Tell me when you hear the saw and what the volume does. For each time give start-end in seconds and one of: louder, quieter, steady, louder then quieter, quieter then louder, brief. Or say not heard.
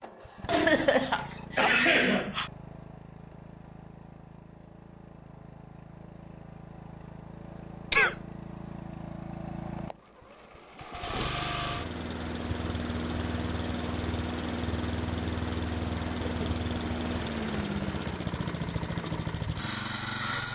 not heard.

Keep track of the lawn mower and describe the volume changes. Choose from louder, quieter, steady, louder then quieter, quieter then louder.
louder.